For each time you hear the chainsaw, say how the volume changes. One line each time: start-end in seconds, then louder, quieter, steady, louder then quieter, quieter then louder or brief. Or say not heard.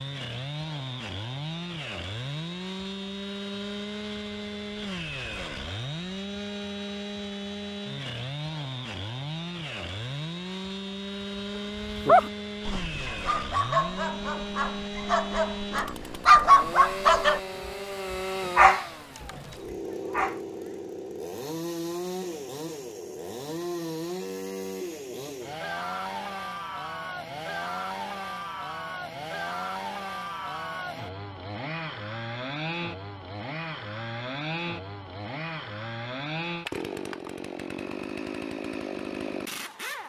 0.0-40.0 steady.